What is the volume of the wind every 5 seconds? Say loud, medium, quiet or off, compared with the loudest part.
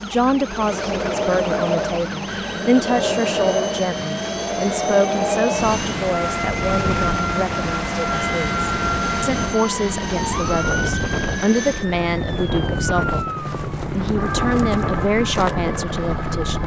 loud, loud, loud, medium.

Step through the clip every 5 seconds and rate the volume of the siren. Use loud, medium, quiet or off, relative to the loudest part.
medium, loud, loud, medium.